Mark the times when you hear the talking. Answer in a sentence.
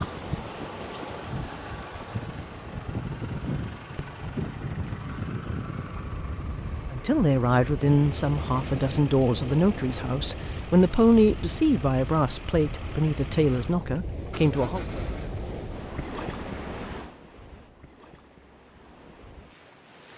The talking can be heard from 6.9 to 14.8 s.